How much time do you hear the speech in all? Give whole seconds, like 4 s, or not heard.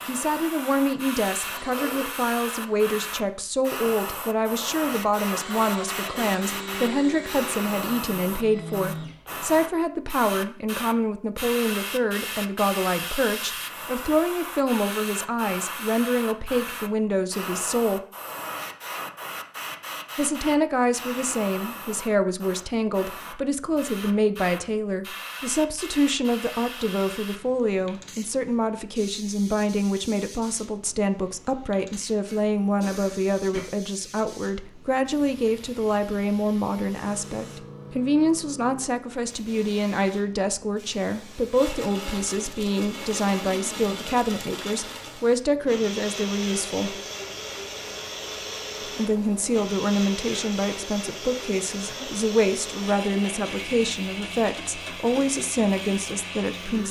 53 s.